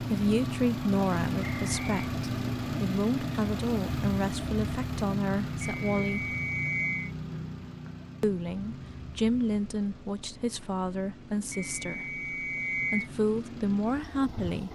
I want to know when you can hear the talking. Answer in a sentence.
You can hear the talking from 0.0 to 6.3 s and from 8.2 to 14.6 s.